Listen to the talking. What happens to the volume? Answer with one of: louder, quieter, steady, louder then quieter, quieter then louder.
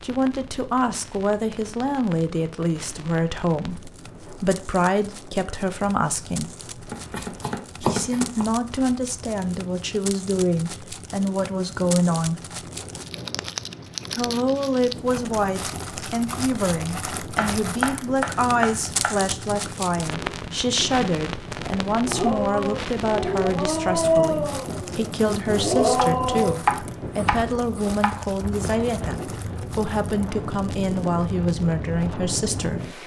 steady.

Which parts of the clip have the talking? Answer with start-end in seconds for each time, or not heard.
0.0-6.5, 7.8-12.3, 14.1-32.9.